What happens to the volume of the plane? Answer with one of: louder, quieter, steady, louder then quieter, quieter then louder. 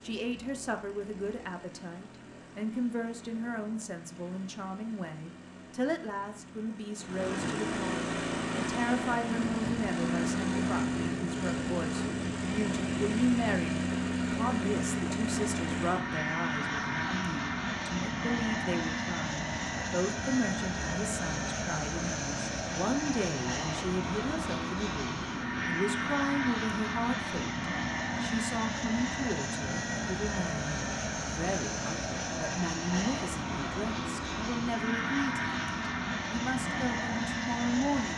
louder.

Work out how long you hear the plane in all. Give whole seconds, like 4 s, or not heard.
38 s.